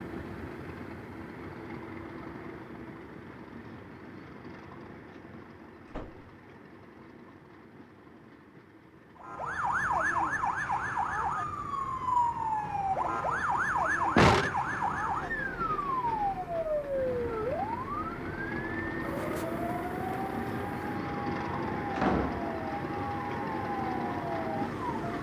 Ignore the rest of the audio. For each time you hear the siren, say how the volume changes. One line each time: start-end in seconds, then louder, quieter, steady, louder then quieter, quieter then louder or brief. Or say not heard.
9.2-25.1 quieter.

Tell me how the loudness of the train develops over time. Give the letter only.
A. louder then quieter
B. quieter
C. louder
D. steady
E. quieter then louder
E.